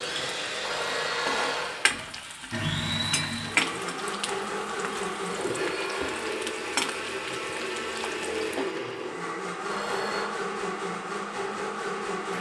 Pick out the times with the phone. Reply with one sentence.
You can hear the phone from 0.6 to 1.7 s, from 5.2 to 6.3 s and from 9.7 to 10.3 s.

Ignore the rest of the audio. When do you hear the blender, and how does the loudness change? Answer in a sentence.
You can hear the blender from 0.0 to 12.3 s, at a steady volume.